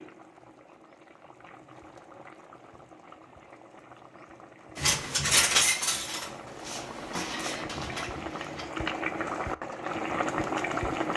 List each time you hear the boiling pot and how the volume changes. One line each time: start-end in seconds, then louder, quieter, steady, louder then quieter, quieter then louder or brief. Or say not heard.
0.0-11.1 louder.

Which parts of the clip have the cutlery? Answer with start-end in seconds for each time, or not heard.
4.8-8.7.